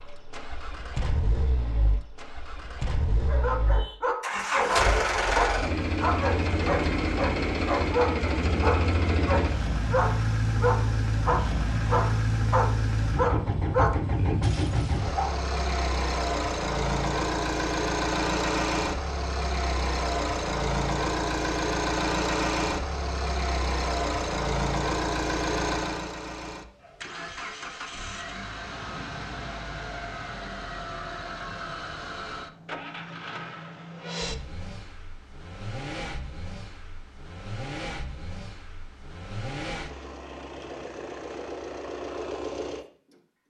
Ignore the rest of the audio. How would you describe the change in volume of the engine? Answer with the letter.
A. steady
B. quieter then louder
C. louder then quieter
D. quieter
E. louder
D.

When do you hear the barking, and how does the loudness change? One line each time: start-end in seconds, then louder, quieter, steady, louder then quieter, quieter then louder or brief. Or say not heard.
3.2-15.3 steady.